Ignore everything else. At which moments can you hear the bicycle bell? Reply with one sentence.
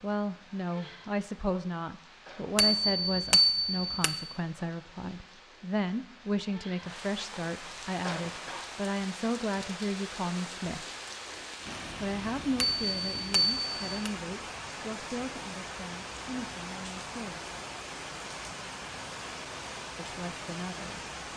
The bicycle bell can be heard from 2.5 to 4.2 s and from 12.6 to 14.2 s.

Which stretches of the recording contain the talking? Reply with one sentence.
The talking can be heard from 0.0 to 10.8 s, from 12.0 to 17.4 s and from 19.9 to 21.1 s.